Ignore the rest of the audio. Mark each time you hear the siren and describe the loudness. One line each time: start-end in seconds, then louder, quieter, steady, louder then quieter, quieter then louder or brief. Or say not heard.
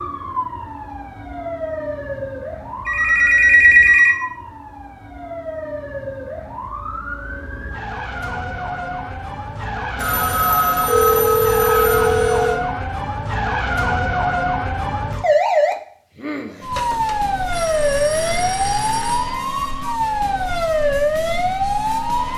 0.0-22.3 louder.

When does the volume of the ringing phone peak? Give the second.
4 s.